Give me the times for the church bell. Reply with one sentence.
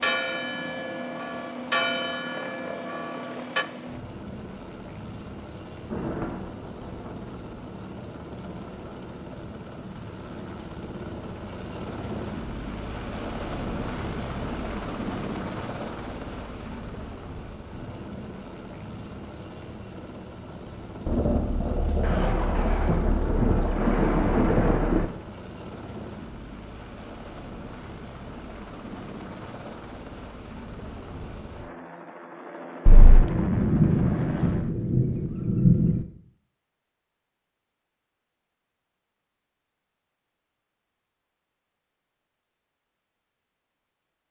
The church bell can be heard from 0.0 to 3.6 s.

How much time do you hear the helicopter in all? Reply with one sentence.
The helicopter can be heard for 35 seconds in total.